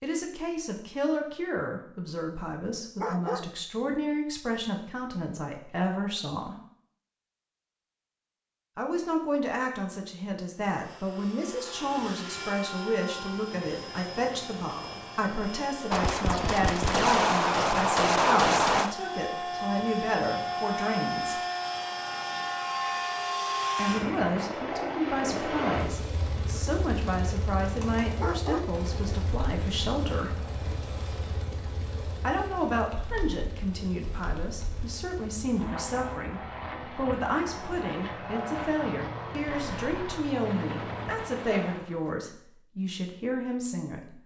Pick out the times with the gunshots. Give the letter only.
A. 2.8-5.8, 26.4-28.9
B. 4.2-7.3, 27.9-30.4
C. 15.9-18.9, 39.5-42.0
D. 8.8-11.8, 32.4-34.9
C.